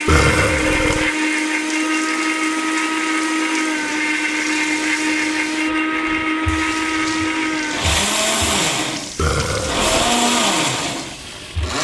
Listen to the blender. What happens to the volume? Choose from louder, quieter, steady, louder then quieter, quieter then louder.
steady.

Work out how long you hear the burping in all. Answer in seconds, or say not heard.
2 s.